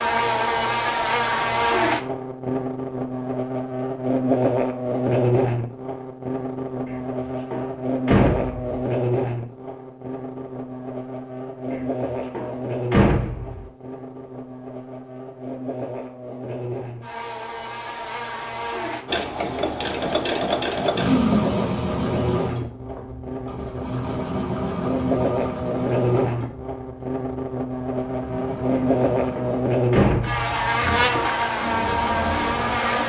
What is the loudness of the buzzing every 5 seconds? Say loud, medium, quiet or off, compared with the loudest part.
loud, loud, medium, medium, medium, loud, loud.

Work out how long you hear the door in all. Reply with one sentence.
You can hear the door for 6 seconds altogether.